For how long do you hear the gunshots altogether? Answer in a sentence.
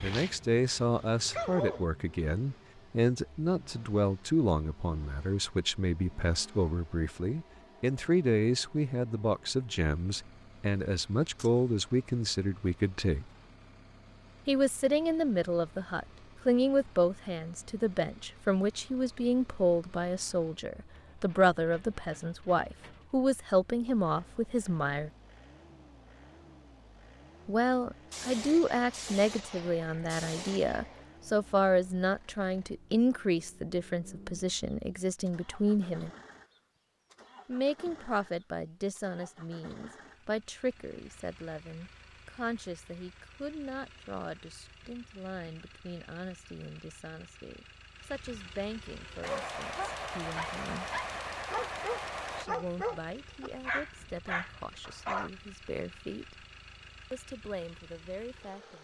You can hear the gunshots for 7 seconds altogether.